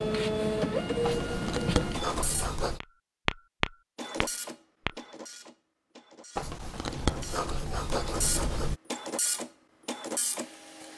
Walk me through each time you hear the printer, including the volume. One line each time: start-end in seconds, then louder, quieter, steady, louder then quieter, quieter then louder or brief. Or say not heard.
0.0-2.5 brief
4.0-10.9 quieter then louder.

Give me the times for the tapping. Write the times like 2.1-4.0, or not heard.
2.8-5.0.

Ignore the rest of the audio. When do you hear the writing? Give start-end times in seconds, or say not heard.
1.0-2.8, 6.3-8.8.